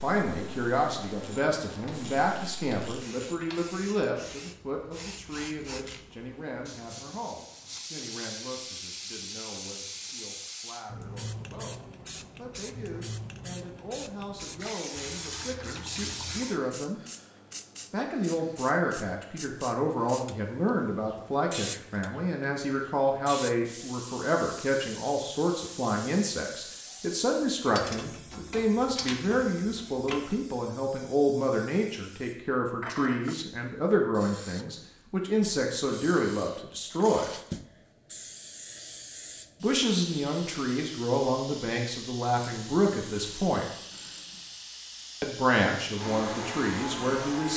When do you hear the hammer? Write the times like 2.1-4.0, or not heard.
not heard.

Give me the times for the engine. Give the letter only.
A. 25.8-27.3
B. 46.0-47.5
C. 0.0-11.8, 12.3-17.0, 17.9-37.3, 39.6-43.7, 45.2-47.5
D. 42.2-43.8
B.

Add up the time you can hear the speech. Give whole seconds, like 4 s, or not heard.
42 s.